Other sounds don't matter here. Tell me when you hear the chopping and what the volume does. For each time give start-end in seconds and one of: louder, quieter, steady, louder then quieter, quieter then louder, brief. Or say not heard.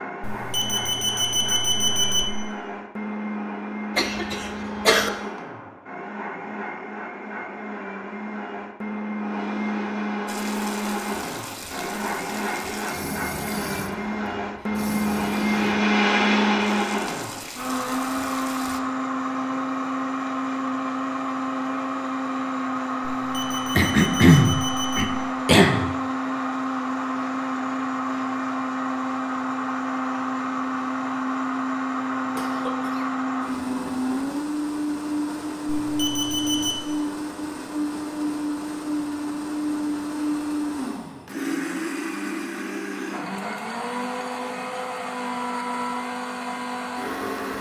not heard.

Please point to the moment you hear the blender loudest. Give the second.
16 s.